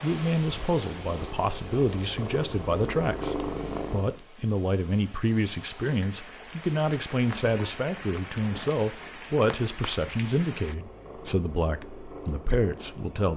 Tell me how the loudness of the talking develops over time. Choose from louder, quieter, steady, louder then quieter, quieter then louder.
steady.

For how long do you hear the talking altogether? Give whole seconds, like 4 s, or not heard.
13 s.